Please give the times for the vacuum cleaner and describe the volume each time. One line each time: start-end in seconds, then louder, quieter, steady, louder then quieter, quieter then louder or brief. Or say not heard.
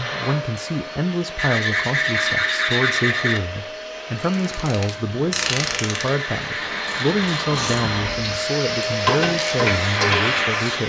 0.0-10.8 louder.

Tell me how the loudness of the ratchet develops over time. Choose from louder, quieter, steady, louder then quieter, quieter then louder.
quieter then louder.